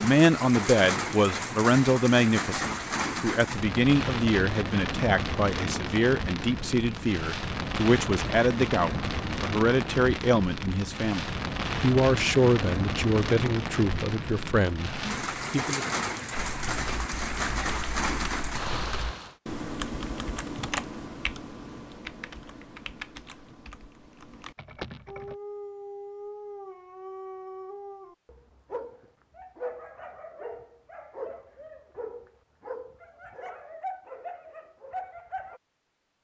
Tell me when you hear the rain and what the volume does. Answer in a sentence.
The rain can be heard from 0.0 to 19.4 s, at a steady volume.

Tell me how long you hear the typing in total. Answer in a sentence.
You can hear the typing for 9 seconds altogether.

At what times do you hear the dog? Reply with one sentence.
You can hear the dog from 25.1 to 35.6 s.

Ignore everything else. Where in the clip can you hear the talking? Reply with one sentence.
The talking can be heard from 0.0 to 15.8 s.